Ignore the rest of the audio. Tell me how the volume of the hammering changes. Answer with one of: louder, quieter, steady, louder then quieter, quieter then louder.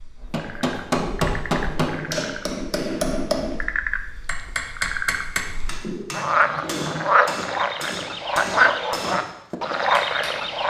quieter.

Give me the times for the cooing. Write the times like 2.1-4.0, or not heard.
0.9-2.3, 5.8-7.2.